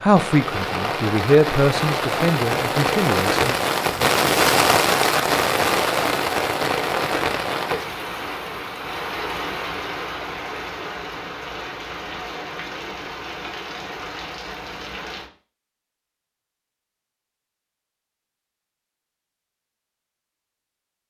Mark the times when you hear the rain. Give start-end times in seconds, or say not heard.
0.0-15.3.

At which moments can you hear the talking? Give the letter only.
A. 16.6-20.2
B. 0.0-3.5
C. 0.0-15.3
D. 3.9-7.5
B.